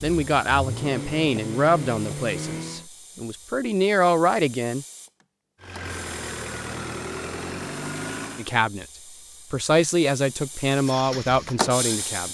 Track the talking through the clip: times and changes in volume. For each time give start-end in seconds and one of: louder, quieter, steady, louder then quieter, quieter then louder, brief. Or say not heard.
0.0-4.8 quieter then louder
8.3-8.8 brief
9.5-12.2 brief.